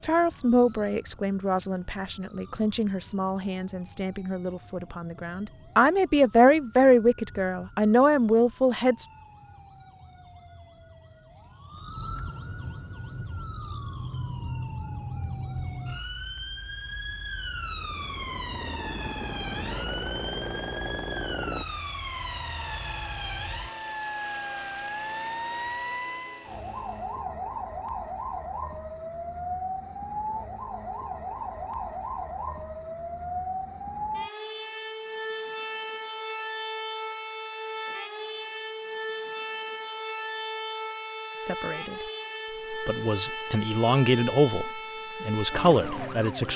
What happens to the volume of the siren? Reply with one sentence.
The loudness of the siren goes up.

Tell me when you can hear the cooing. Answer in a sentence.
You can't hear the cooing here.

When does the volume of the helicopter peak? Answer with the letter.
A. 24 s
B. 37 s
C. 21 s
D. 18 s
C.